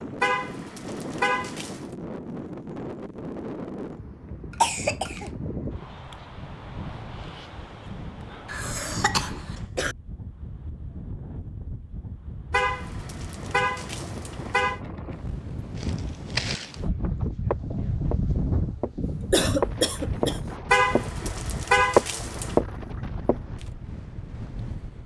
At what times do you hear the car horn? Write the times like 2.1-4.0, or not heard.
0.2-1.9, 12.5-14.8, 20.7-22.6.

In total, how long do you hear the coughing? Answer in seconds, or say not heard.
4 s.